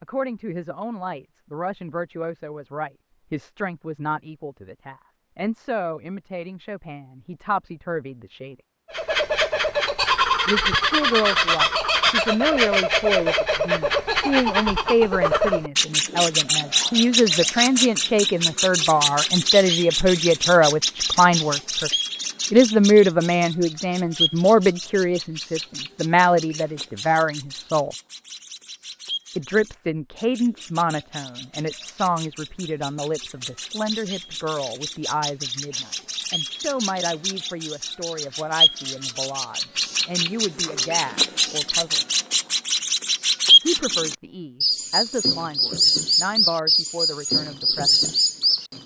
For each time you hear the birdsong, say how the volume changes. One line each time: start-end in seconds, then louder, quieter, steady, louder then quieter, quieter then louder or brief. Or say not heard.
8.9-48.8 quieter then louder.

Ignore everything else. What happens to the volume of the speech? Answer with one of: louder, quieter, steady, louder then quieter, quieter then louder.
louder then quieter.